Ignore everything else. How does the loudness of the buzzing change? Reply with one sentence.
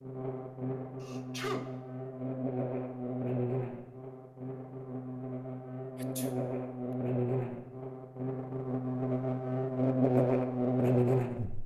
The loudness of the buzzing goes up.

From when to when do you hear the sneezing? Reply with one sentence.
You can hear the sneezing from 1.0 to 1.7 s and from 6.0 to 6.5 s.